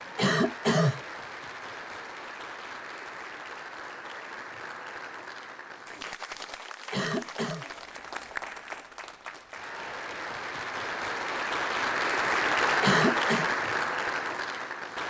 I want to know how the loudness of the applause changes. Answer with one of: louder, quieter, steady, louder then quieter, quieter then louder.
louder.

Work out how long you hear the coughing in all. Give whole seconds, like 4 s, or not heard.
2 s.